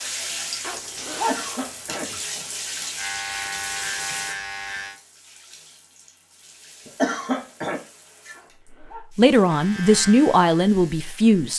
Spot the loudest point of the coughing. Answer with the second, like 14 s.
7 s.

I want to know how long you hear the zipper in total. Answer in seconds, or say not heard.
2 s.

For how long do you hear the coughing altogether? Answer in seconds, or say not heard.
2 s.